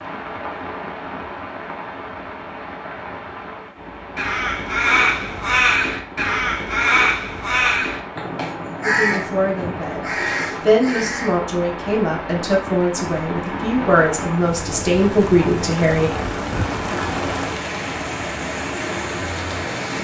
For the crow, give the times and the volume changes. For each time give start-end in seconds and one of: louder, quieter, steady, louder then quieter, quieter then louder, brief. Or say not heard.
4.2-11.4 quieter.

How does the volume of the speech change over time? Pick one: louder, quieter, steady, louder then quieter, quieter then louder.
louder.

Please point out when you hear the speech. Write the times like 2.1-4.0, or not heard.
8.8-16.1.